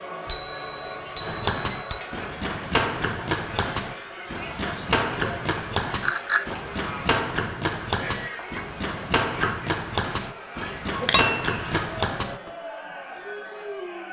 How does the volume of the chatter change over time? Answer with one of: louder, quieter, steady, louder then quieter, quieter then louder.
steady.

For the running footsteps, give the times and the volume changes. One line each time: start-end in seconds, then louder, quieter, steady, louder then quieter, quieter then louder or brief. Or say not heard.
1.2-12.5 steady.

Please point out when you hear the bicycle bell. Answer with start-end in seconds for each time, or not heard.
0.2-2.0, 6.0-6.5, 11.0-11.8.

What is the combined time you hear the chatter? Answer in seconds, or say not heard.
14 s.